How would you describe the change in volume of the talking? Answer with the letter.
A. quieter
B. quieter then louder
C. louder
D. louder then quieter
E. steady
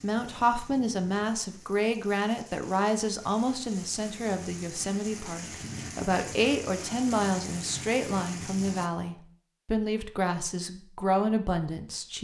E.